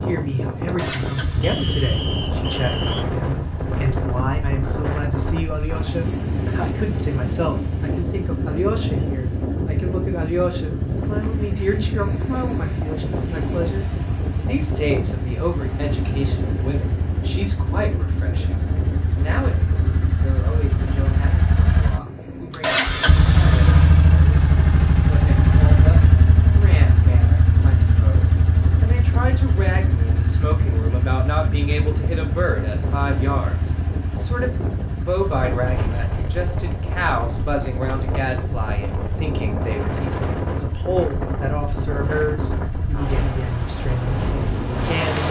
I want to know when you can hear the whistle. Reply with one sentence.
You can hear the whistle from 1.4 to 3.0 s.